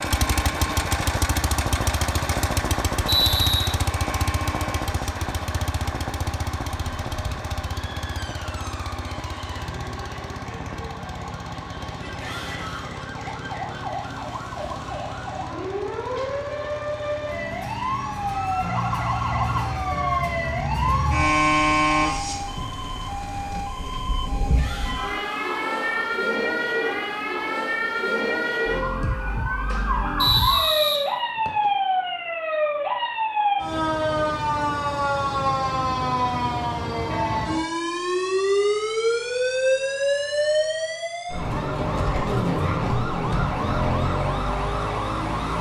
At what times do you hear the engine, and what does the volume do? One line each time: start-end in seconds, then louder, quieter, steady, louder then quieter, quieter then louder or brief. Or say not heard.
0.0-23.6 quieter.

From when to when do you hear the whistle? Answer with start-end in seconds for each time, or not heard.
3.0-3.7, 30.2-31.7.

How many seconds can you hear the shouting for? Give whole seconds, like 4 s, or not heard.
2 s.